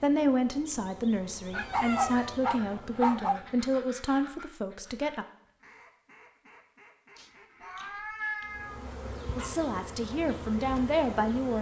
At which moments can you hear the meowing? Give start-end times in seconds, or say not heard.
0.8-2.4, 7.6-8.9.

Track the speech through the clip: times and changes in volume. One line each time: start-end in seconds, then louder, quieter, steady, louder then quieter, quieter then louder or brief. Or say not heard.
0.0-5.2 steady
9.3-11.5 brief.